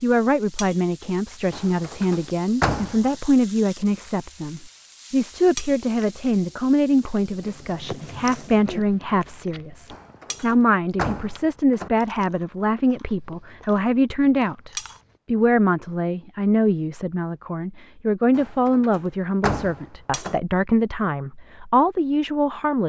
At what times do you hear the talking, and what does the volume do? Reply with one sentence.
You can hear the talking from 0.0 to 22.8 s, at a steady volume.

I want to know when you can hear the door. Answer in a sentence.
You can hear the door from 1.5 to 3.0 s, from 9.9 to 11.9 s and from 18.4 to 20.4 s.